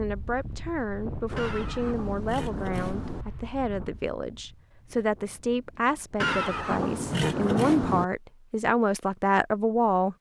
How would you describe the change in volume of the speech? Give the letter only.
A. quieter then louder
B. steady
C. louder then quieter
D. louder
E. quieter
D.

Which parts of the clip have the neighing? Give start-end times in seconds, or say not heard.
1.4-3.2, 6.2-8.1.